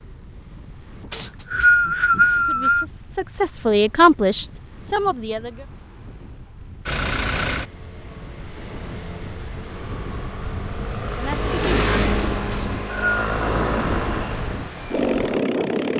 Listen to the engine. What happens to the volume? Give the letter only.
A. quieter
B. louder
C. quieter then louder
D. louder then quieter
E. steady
C.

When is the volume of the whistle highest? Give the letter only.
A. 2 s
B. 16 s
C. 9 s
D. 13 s
A.